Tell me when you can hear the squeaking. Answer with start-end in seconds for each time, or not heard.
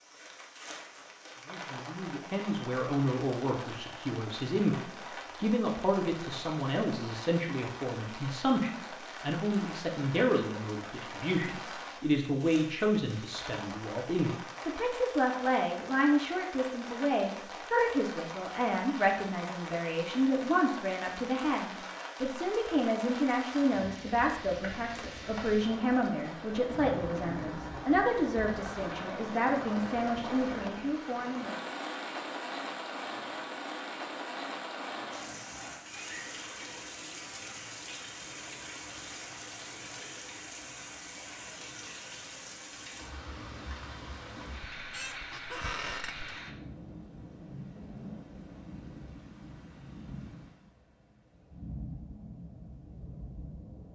44.6-46.3.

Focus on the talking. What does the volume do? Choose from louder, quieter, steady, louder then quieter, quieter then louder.
steady.